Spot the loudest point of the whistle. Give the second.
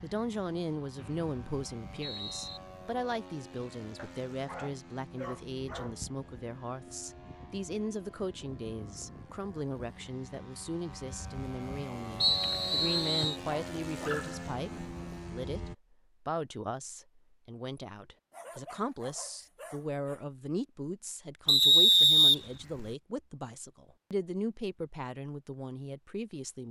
22 s.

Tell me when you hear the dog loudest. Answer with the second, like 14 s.
14 s.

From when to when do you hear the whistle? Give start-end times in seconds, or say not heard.
0.9-2.6, 12.2-13.3, 21.4-22.9.